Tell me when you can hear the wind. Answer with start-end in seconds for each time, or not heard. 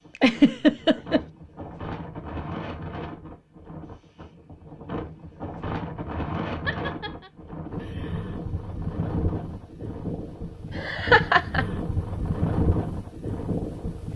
0.0-14.1.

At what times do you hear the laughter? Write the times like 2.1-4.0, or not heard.
0.1-1.2, 6.7-7.3, 10.8-11.7.